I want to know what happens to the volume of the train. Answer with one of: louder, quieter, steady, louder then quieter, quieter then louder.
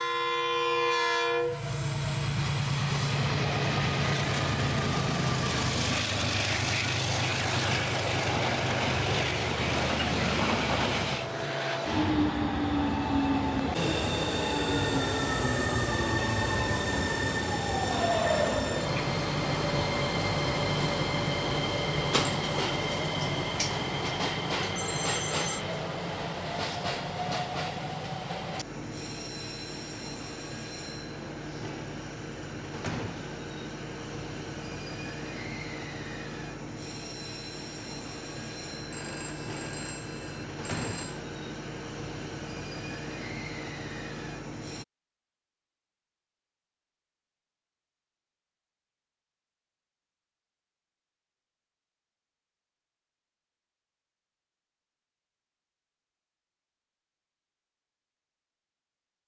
quieter.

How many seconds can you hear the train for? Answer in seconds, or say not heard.
45 s.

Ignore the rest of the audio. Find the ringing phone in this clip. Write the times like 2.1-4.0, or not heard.
24.8-25.6, 38.9-41.2.